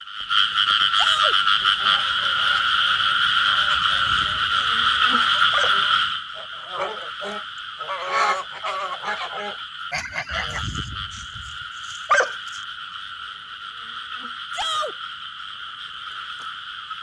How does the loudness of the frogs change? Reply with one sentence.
The volume of the frogs goes down.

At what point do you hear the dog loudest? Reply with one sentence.
The loudest moment of the dog is at 12 seconds.